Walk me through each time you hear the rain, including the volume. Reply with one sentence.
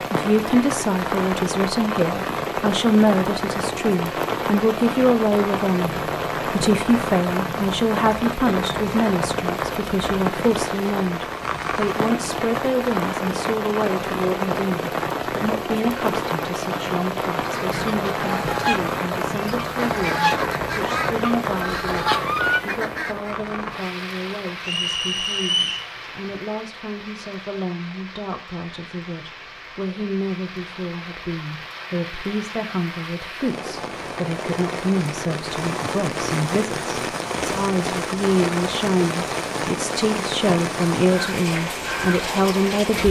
You can hear the rain from 0.0 to 43.0 s, getting quieter then louder.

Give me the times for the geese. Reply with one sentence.
The geese can be heard from 17.4 to 23.4 s.